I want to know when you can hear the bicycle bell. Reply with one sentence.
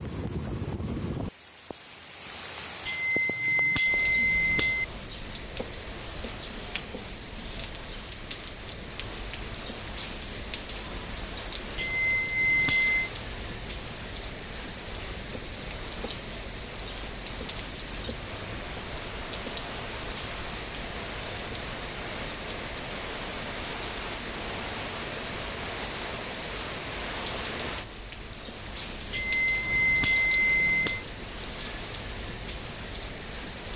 You can hear the bicycle bell from 2.9 to 4.8 s, from 11.8 to 13.1 s and from 29.1 to 31.1 s.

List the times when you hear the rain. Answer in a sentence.
The rain can be heard from 0.0 to 33.7 s.